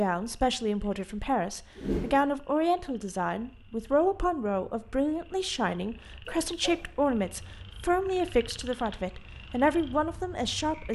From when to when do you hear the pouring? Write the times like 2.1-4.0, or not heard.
not heard.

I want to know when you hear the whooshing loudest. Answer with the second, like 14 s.
2 s.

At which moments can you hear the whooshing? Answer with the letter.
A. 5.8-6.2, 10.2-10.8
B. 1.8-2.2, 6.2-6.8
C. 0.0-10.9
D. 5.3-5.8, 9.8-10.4
B.